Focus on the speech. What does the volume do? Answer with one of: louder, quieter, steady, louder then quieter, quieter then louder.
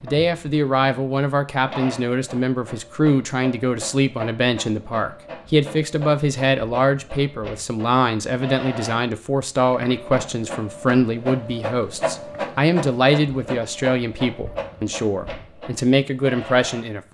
steady.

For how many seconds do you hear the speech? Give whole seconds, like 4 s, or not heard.
17 s.